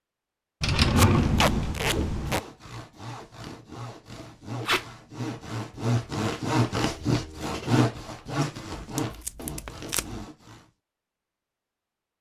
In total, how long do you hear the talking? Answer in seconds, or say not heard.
not heard.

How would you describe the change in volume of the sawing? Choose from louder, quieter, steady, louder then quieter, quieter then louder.
louder then quieter.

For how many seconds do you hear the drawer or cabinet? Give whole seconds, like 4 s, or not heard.
2 s.